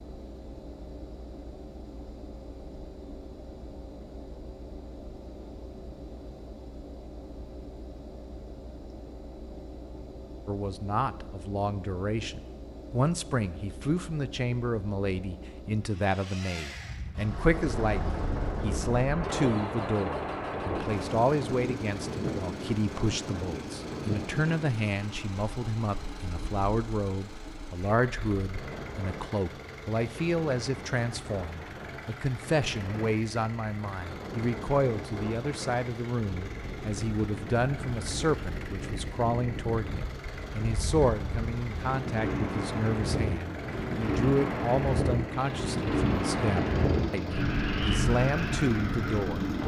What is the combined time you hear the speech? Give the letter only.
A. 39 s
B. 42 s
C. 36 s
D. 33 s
A.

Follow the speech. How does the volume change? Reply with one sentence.
The volume of the speech stays about the same.